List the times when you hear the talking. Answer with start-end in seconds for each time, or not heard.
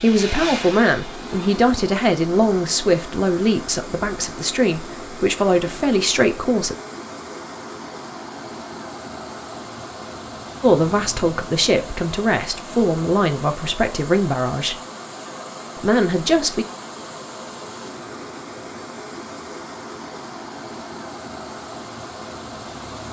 0.0-6.8, 10.6-14.8, 15.8-16.6.